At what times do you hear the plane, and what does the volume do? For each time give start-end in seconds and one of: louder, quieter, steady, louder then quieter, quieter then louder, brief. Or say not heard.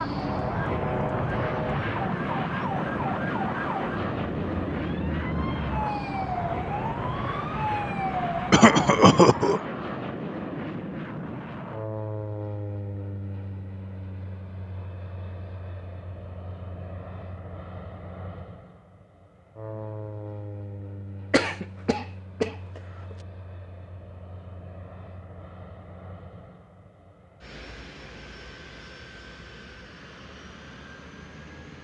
0.0-31.7 quieter.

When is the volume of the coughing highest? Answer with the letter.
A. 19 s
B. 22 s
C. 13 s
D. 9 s
D.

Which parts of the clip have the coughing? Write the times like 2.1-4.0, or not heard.
8.5-9.6, 21.3-22.8.